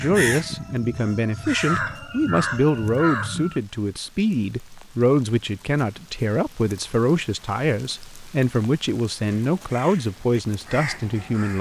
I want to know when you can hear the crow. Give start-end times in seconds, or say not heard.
0.0-4.0, 9.3-11.5.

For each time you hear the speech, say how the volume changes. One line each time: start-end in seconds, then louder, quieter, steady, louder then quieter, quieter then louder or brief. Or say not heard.
0.0-11.5 steady.